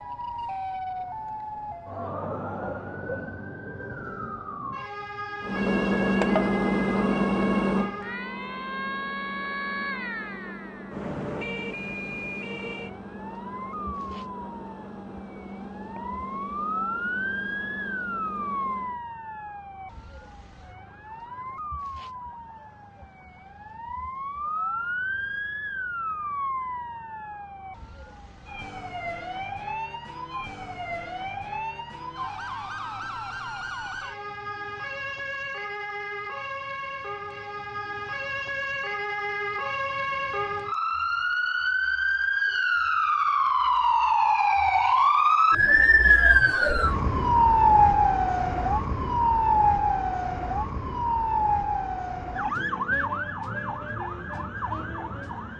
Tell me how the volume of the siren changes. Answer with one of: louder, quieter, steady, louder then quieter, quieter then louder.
louder.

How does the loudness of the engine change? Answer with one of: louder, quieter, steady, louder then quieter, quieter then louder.
quieter.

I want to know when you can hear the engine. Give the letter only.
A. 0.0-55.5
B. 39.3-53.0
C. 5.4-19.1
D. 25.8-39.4
C.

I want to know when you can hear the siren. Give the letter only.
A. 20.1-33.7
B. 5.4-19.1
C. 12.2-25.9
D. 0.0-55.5
D.